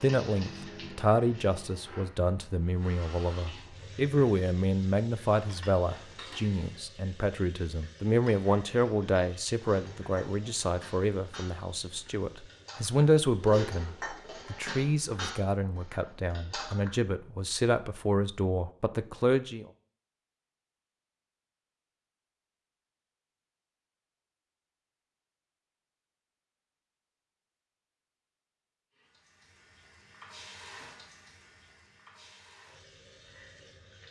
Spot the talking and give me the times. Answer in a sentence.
You can hear the talking from 0.0 to 19.6 s.